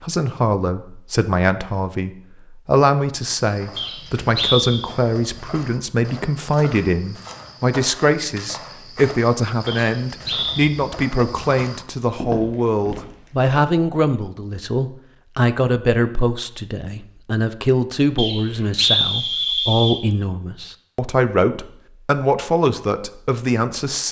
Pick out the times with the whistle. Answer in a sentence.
The whistle can be heard from 3.8 to 4.8 s, from 9.7 to 10.7 s and from 18.1 to 20.0 s.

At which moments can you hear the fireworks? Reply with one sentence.
The fireworks can't be heard in this clip.